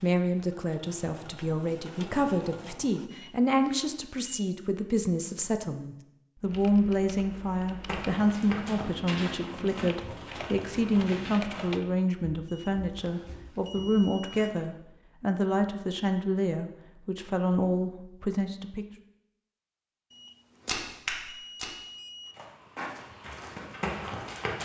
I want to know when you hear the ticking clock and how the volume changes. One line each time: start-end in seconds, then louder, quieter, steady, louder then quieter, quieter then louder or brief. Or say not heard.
not heard.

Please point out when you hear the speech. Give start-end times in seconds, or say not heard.
0.0-18.9.